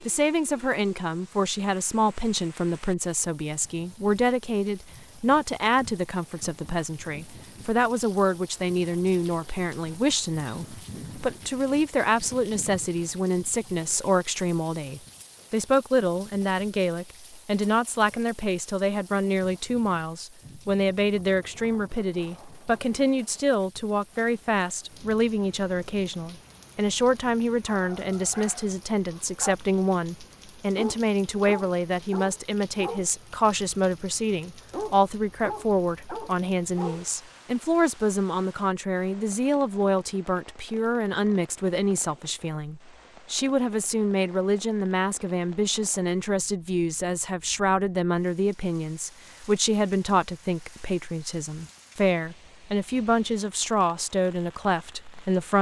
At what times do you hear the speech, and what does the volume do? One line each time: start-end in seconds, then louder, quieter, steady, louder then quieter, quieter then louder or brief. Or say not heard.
0.0-55.5 steady.